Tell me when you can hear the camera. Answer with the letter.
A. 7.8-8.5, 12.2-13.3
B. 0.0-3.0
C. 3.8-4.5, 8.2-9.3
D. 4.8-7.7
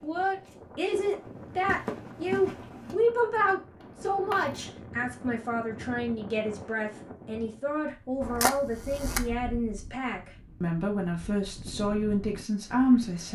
C.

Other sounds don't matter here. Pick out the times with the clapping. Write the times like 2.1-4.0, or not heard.
not heard.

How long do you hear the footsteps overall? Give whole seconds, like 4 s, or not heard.
3 s.